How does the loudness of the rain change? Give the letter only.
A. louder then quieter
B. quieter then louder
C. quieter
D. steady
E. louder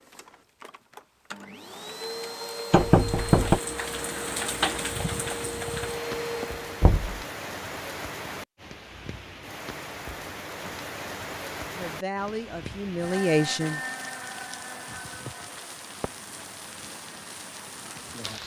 C.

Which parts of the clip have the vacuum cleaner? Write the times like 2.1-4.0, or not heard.
0.0-6.8.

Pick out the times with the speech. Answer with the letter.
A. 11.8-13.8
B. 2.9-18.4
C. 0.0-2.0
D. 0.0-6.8
A.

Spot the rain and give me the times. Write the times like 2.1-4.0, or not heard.
2.9-18.4.